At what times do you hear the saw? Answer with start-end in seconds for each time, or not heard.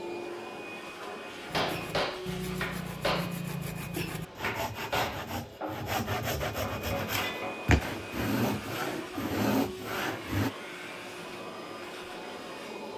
1.5-10.5.